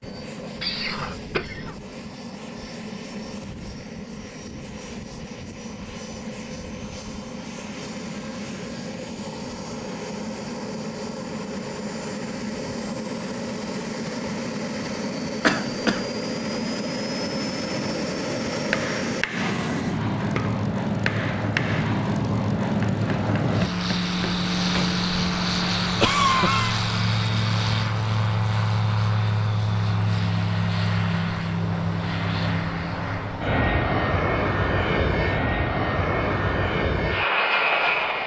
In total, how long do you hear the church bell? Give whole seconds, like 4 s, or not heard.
not heard.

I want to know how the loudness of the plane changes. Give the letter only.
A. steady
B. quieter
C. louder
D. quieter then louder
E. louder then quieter
C.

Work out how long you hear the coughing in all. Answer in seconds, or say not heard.
3 s.